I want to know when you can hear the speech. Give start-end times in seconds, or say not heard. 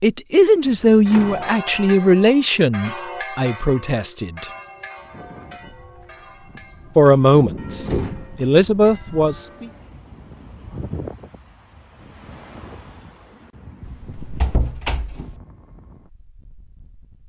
0.0-4.5, 7.0-9.7.